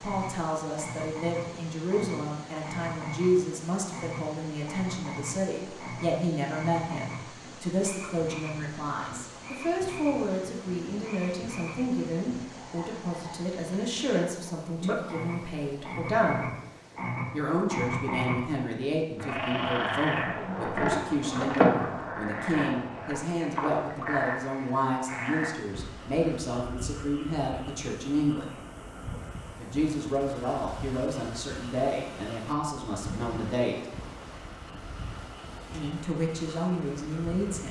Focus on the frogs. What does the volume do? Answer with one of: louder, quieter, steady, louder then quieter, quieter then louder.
louder then quieter.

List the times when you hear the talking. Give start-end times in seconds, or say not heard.
0.0-16.4, 17.3-28.6, 29.6-33.8, 35.7-37.6.